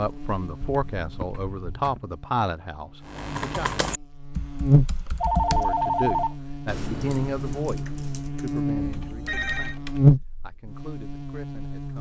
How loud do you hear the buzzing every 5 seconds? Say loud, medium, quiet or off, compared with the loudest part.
medium, medium, loud.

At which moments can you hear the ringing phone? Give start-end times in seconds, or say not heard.
0.6-2.0, 4.8-6.3, 8.8-9.8.